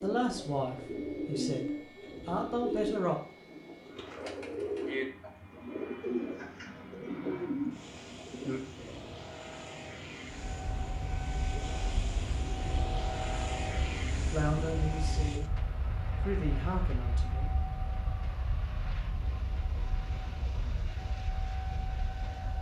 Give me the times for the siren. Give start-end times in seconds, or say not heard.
10.3-22.5.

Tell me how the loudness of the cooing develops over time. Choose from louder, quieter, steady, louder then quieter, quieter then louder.
steady.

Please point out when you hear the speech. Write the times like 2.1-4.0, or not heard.
0.0-3.2, 14.3-15.5, 16.1-17.6.